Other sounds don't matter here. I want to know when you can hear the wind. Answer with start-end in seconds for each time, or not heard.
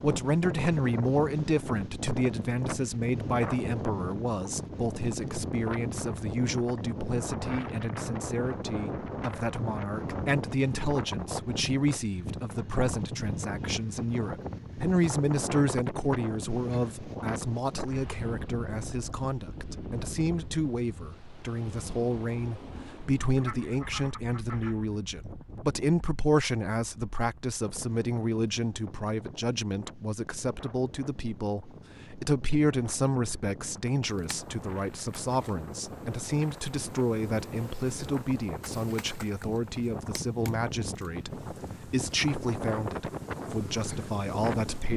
0.0-44.9.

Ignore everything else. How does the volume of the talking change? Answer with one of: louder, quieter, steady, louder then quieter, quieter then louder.
steady.